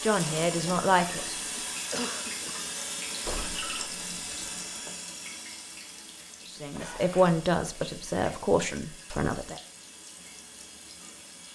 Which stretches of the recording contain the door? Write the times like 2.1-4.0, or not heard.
3.2-5.0.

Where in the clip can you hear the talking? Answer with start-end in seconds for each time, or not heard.
0.0-1.4, 6.5-9.6.